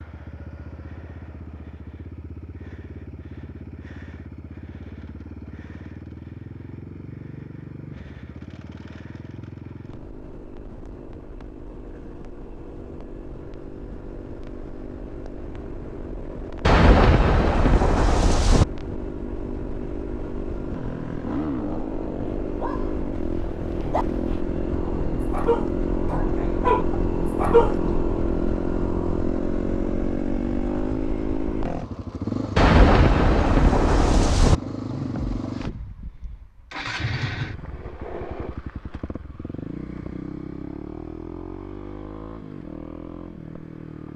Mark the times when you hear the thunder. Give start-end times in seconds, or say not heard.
16.6-18.6, 32.5-34.5.